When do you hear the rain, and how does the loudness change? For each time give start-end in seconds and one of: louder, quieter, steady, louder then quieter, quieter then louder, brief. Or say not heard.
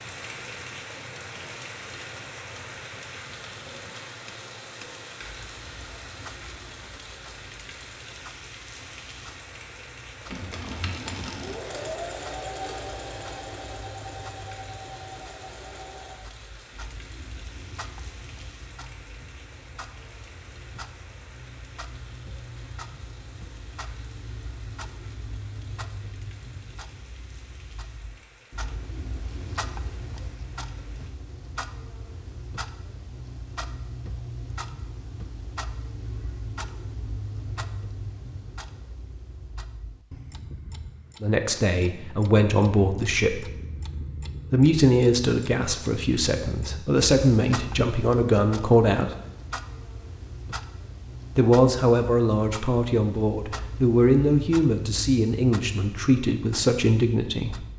0.0-31.1 quieter.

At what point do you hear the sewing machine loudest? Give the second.
12 s.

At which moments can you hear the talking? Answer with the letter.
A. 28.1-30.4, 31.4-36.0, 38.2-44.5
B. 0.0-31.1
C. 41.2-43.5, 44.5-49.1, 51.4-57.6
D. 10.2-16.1
C.